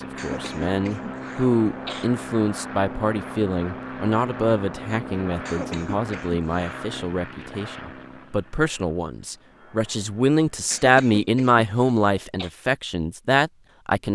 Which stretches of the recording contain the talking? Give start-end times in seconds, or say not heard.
0.0-14.1.